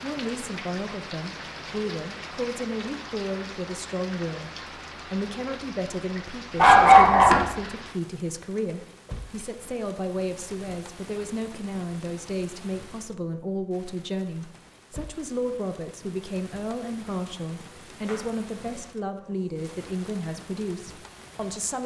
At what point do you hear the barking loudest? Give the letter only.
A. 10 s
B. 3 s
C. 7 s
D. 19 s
C.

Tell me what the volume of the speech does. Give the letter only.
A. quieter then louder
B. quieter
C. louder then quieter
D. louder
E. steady
E.